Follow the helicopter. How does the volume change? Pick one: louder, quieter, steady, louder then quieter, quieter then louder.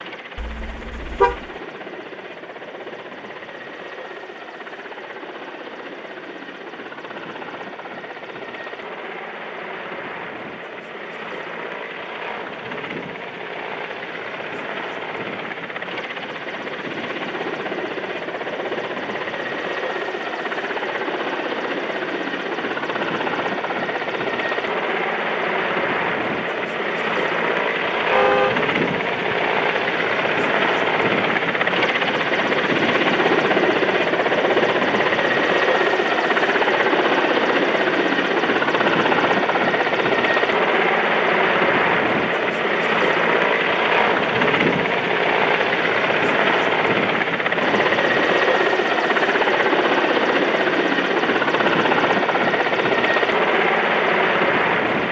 louder.